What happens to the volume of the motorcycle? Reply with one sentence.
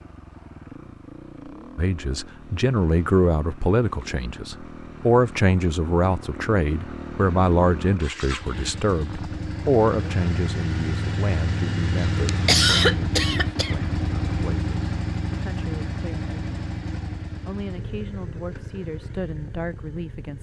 The loudness of the motorcycle goes up, then down.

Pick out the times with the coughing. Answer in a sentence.
The coughing can be heard from 12.2 to 13.9 s.